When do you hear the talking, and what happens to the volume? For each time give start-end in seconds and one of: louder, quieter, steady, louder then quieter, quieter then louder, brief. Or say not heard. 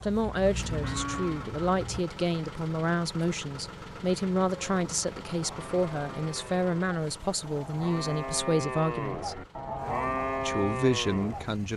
0.0-9.4 steady
10.4-11.7 brief.